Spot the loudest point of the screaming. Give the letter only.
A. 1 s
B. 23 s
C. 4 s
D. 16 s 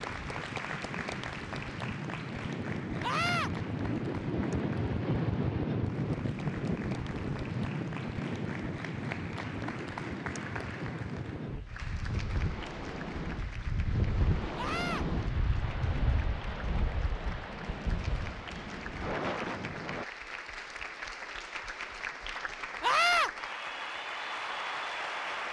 B.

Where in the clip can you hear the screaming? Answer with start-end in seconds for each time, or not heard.
3.0-3.5, 14.6-15.1, 22.8-23.3.